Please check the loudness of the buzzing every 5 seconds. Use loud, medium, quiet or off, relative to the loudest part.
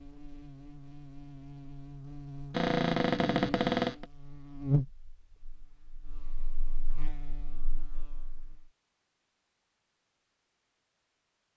loud, quiet, off.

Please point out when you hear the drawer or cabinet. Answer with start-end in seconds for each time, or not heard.
2.5-4.0.